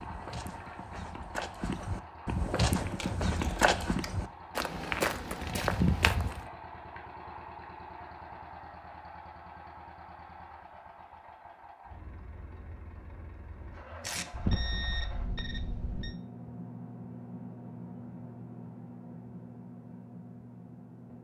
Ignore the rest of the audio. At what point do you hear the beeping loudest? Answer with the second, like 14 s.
15 s.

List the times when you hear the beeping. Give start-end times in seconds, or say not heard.
14.3-16.1.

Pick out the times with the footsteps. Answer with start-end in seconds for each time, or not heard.
0.0-6.5.